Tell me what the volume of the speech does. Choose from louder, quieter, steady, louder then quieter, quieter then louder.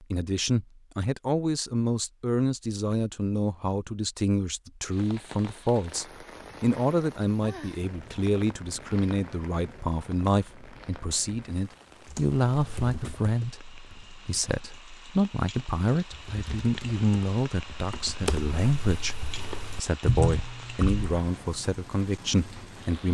steady.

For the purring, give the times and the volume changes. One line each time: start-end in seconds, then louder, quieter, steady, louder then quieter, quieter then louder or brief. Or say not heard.
not heard.